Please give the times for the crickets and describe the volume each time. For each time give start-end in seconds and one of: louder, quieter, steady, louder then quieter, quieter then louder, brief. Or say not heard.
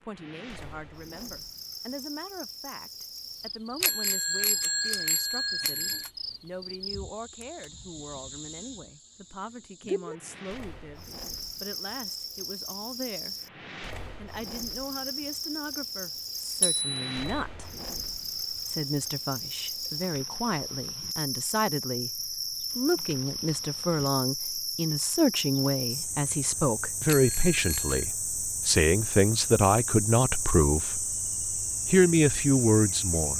0.0-33.3 louder.